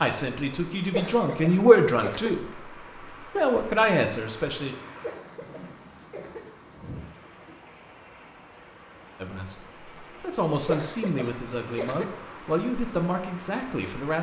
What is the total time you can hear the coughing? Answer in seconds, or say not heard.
4 s.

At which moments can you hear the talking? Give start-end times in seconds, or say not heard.
0.0-4.8, 9.2-14.1.